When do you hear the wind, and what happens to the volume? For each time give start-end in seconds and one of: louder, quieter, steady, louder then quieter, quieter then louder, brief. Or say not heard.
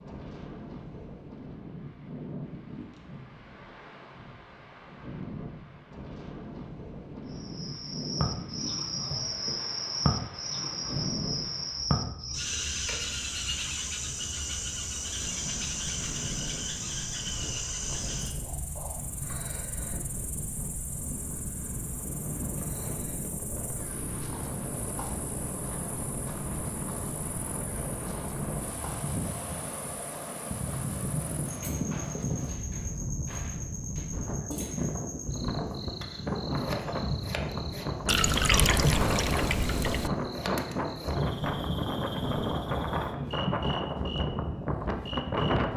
0.0-45.7 louder.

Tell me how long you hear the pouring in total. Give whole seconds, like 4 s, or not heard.
2 s.